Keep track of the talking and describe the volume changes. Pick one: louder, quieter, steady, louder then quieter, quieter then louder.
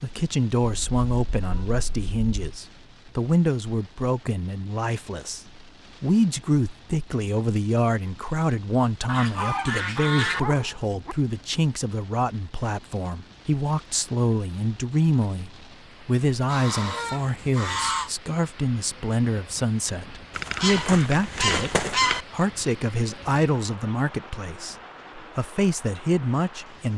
steady.